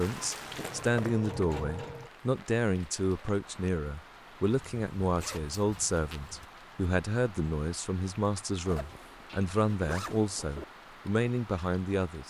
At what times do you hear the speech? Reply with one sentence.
The speech can be heard from 0.0 to 12.2 s.